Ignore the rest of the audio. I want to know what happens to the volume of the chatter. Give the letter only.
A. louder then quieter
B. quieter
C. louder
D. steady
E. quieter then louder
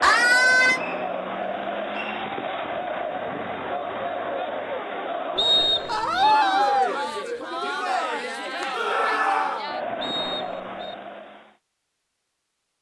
D.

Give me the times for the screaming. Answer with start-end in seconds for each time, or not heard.
0.0-0.8, 5.8-7.0, 8.7-9.7.